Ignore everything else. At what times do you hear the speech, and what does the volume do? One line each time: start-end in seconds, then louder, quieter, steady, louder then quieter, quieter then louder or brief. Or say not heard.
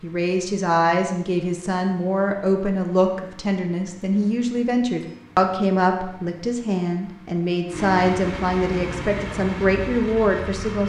0.0-10.8 steady.